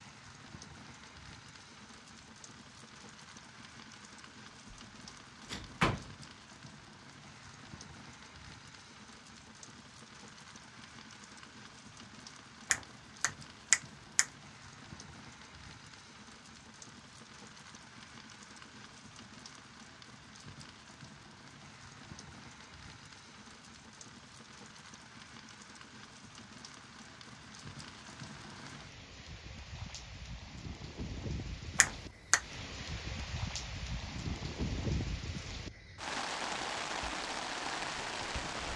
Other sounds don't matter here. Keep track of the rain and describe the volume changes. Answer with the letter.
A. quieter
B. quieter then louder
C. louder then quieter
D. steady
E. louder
E.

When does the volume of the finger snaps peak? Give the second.
14 s.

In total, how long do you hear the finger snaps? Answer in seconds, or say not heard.
2 s.